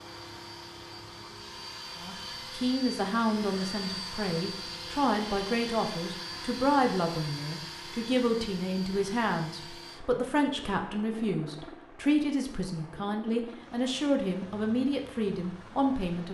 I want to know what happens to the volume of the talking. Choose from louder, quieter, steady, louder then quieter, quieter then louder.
steady.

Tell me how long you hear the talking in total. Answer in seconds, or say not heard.
14 s.